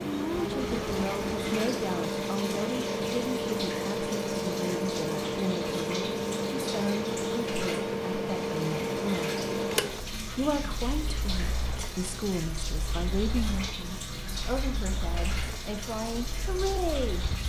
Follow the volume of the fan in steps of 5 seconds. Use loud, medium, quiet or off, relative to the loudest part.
loud, loud, quiet, quiet.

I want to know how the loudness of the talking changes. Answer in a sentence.
The volume of the talking stays about the same.